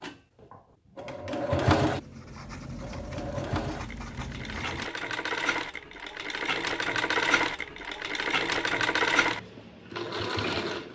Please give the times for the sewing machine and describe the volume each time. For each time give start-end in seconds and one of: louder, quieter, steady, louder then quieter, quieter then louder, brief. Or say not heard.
0.0-10.8 quieter then louder.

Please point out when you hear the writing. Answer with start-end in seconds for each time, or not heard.
1.8-4.9.